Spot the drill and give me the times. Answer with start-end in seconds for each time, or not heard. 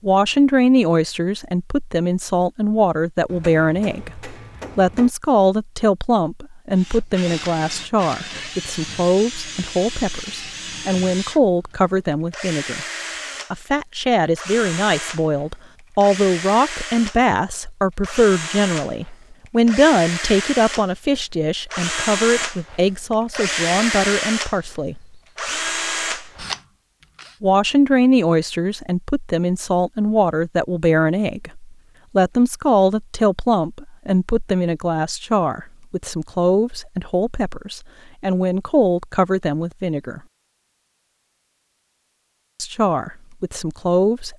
6.7-27.4.